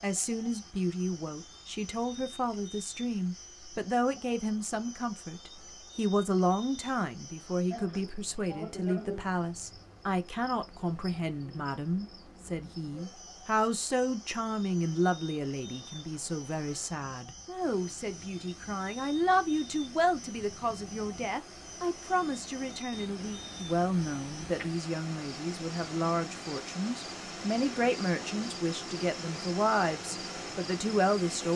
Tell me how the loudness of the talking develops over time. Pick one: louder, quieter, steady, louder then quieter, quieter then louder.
steady.